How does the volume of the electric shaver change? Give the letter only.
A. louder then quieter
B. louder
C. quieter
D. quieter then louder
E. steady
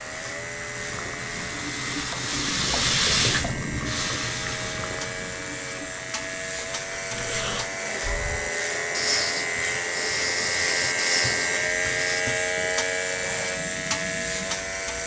B.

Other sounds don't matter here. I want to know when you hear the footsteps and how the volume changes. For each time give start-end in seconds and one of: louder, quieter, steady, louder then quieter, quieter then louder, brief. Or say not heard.
not heard.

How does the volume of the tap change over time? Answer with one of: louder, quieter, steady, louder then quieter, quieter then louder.
quieter.